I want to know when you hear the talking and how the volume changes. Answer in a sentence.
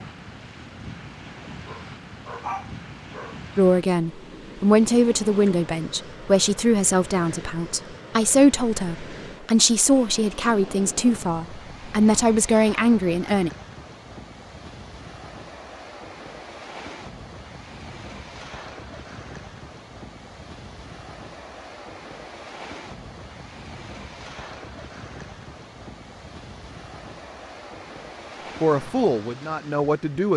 You can hear the talking from 3.5 to 13.5 s, at a steady volume; and briefly from 28.6 to 30.3 s.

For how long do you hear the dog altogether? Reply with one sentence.
You can hear the dog for 2 seconds altogether.